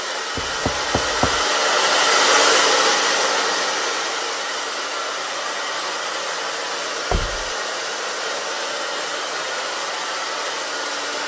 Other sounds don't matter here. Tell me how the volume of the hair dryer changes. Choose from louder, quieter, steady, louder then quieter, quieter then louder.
quieter.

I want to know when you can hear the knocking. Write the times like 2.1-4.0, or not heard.
0.3-1.4, 7.1-7.5.